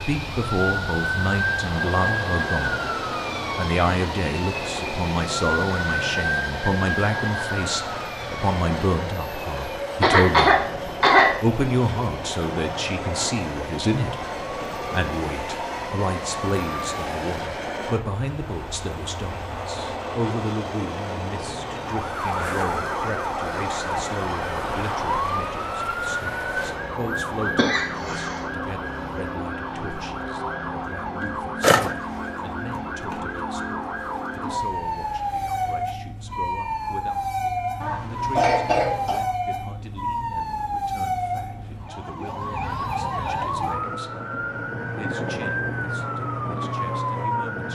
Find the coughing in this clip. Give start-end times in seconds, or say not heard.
10.0-11.3, 27.6-28.4, 37.8-39.2.